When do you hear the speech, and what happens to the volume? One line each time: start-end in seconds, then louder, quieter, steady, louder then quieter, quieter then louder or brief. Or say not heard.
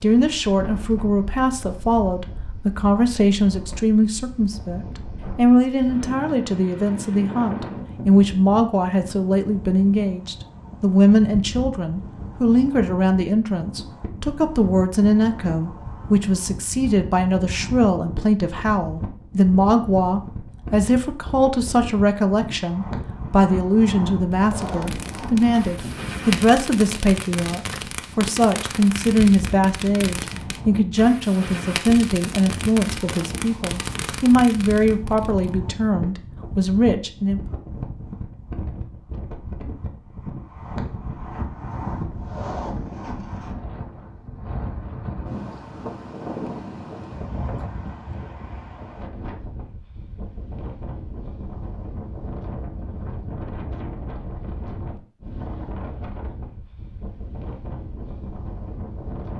0.0-37.4 steady.